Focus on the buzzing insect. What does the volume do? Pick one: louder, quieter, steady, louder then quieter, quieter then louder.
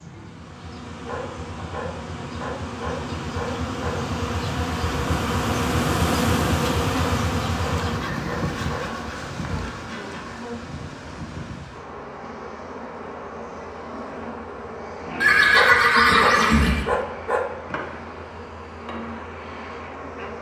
louder then quieter.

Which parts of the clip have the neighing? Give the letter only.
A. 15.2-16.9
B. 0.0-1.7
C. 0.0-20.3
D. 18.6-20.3
A.